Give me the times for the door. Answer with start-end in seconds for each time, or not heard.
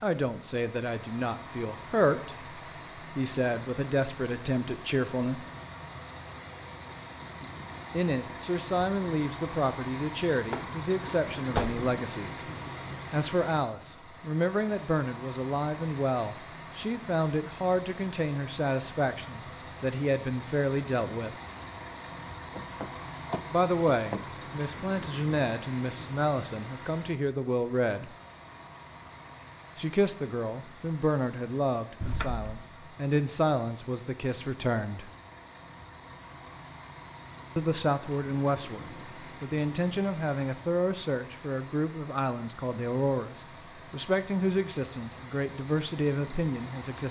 10.5-11.9, 22.6-24.2, 32.0-32.5.